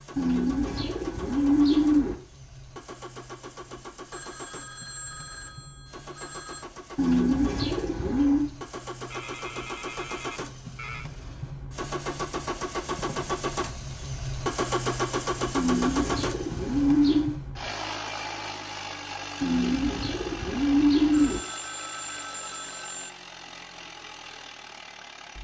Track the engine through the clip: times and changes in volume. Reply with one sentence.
The engine can be heard from 0.0 to 25.3 s, getting louder then quieter.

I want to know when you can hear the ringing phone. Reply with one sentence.
You can hear the ringing phone from 4.1 to 6.7 s, from 9.1 to 11.1 s and from 21.1 to 23.1 s.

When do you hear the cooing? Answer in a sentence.
You can hear the cooing from 0.1 to 2.1 s, from 7.0 to 8.5 s, from 15.6 to 17.4 s and from 19.4 to 21.4 s.